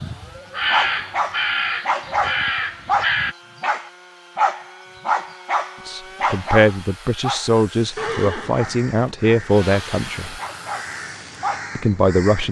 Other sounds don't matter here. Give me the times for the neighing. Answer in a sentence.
You can hear the neighing from 8.0 to 9.2 s.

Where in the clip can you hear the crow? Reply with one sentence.
You can hear the crow from 0.0 to 3.4 s and from 8.4 to 12.4 s.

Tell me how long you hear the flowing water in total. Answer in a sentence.
You can't hear the flowing water here.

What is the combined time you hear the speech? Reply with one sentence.
The speech can be heard for 5 seconds in total.